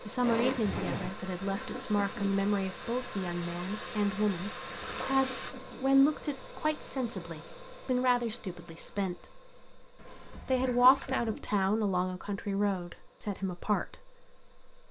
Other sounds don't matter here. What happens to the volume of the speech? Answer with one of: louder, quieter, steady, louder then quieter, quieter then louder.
steady.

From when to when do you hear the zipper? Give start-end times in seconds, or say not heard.
0.2-1.1, 9.9-11.3.